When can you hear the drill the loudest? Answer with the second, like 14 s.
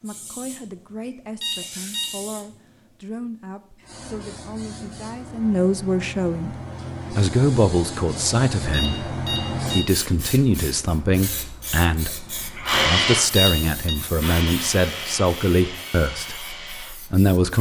13 s.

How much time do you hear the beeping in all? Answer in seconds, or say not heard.
3 s.